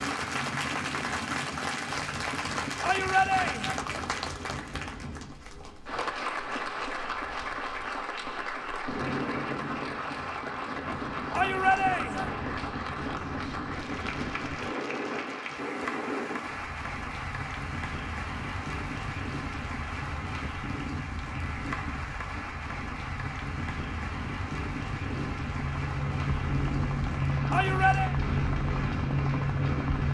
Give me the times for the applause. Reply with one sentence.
The applause can be heard from 0.0 to 30.1 s.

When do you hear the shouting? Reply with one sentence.
The shouting can be heard from 2.8 to 3.8 s, from 11.3 to 12.3 s and from 27.5 to 28.1 s.